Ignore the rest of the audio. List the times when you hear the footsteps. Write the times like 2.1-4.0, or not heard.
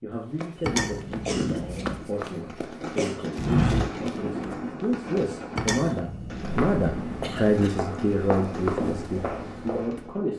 0.3-10.0.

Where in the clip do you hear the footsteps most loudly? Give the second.
4 s.